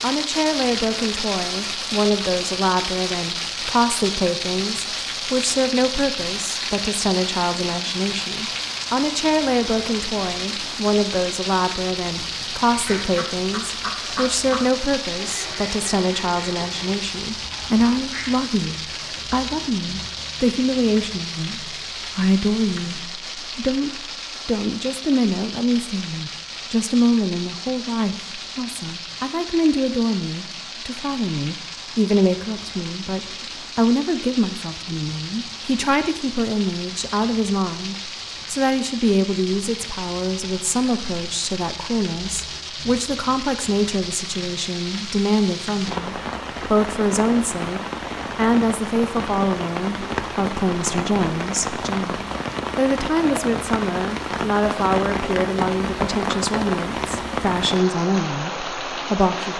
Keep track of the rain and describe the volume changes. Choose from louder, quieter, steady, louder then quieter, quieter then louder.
quieter then louder.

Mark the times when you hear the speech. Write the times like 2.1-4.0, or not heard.
0.0-59.5.